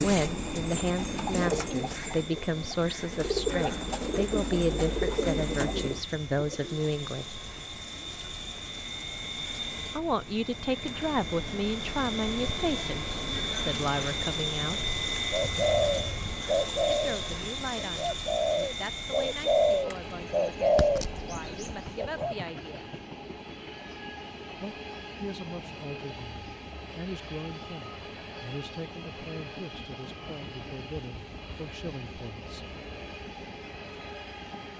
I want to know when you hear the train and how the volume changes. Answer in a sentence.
The train can be heard from 0.2 to 34.7 s, getting louder then quieter.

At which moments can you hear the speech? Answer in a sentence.
You can hear the speech from 0.0 to 7.4 s, from 9.9 to 14.8 s, from 16.9 to 22.9 s and from 24.6 to 32.6 s.